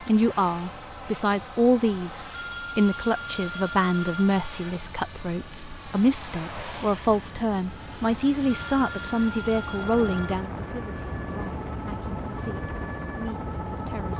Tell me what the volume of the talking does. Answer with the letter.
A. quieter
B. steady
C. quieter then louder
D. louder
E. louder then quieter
A.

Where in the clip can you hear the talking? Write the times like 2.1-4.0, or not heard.
0.1-14.1.